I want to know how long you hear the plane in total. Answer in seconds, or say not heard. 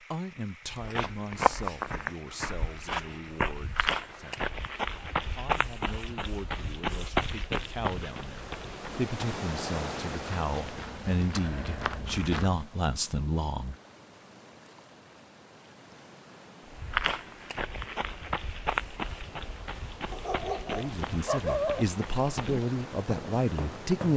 not heard.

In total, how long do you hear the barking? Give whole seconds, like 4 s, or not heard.
2 s.